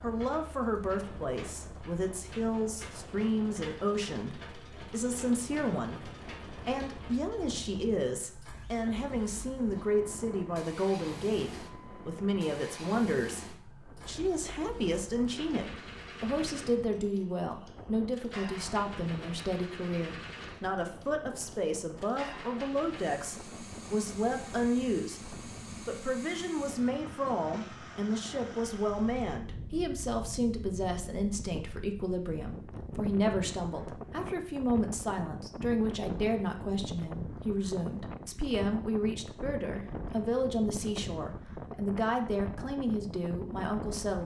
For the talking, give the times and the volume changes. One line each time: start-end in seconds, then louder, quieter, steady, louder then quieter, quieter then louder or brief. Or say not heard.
0.0-44.2 steady.